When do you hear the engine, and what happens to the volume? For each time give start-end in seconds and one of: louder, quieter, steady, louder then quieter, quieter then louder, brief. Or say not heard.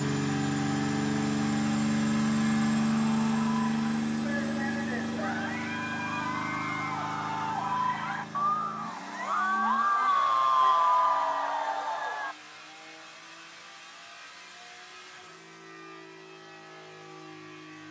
0.0-17.8 quieter.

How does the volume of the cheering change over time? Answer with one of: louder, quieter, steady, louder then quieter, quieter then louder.
louder.